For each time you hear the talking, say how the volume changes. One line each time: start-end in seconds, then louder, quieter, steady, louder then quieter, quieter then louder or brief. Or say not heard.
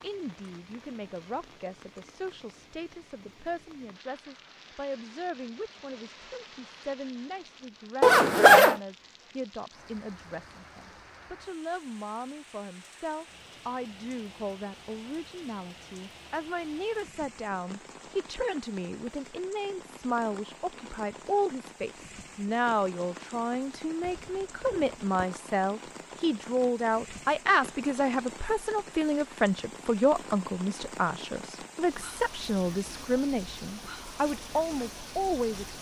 0.0-35.7 louder.